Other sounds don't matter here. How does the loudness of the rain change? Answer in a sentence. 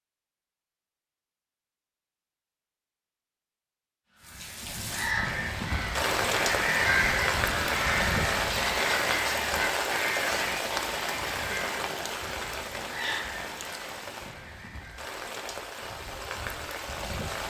The loudness of the rain goes down.